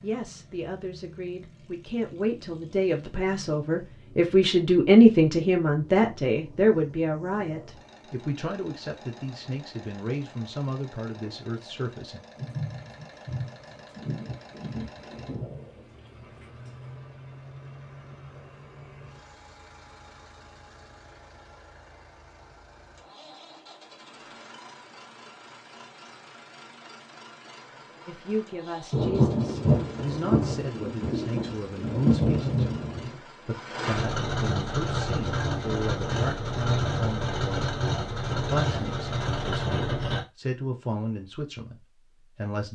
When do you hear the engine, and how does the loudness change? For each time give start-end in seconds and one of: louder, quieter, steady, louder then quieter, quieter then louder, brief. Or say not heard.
0.0-40.2 louder.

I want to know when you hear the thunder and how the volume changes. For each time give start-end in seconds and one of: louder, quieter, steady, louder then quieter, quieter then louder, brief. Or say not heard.
12.3-16.8 quieter
28.9-33.1 quieter then louder.